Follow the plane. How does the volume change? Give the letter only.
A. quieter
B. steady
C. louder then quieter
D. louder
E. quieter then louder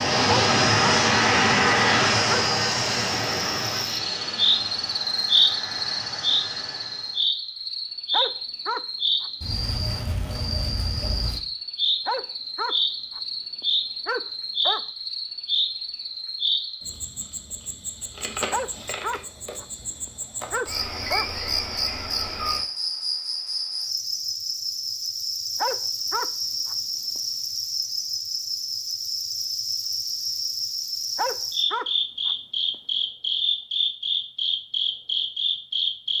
A.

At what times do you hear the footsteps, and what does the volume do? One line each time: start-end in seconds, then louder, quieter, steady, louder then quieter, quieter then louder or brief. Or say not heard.
not heard.